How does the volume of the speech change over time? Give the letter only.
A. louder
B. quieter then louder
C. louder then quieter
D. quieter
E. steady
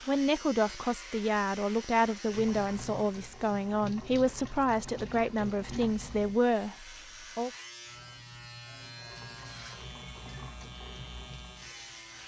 E.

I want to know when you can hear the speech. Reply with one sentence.
The speech can be heard from 0.1 to 7.5 s.